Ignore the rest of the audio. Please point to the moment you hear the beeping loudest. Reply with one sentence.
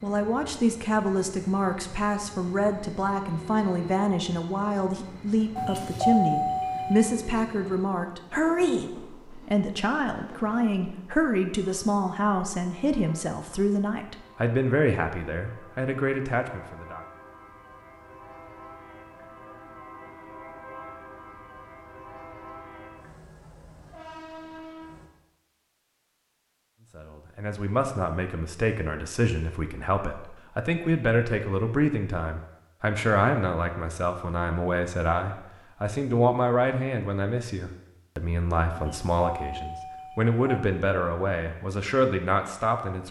The loudest moment of the beeping is at 6 seconds.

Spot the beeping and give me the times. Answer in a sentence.
The beeping can be heard from 5.5 to 7.2 s and from 38.7 to 40.4 s.